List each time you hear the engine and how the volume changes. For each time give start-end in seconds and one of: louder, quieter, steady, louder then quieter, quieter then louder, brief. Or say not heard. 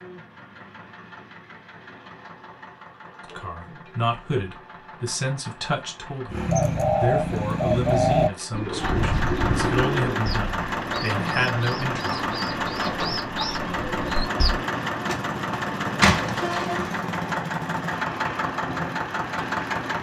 0.0-19.9 louder.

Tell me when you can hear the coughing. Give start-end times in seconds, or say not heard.
not heard.